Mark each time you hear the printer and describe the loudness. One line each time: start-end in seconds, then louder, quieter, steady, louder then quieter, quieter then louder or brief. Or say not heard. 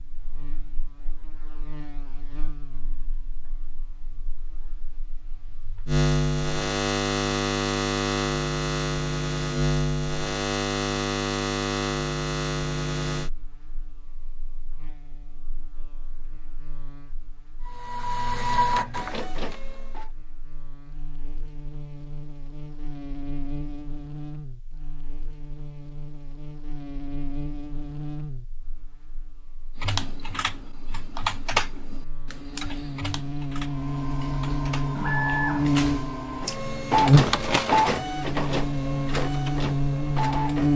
17.6-20.1 brief
33.5-40.7 louder then quieter.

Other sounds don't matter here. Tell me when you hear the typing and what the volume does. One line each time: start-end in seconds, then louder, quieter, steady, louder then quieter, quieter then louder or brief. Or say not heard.
29.8-35.0 louder then quieter.